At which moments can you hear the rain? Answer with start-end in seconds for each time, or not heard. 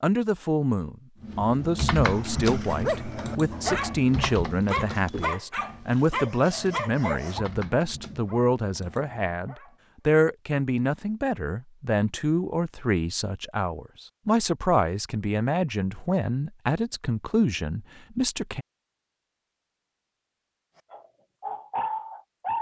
not heard.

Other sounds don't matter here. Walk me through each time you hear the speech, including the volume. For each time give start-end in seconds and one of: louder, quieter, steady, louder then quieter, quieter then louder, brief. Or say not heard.
0.0-18.6 steady.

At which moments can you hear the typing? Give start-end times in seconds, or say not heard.
1.2-9.2.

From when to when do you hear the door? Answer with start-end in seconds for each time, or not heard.
not heard.